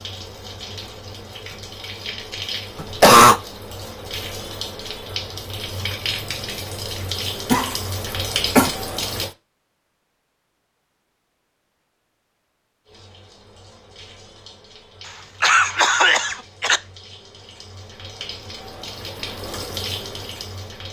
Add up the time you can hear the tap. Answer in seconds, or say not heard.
17 s.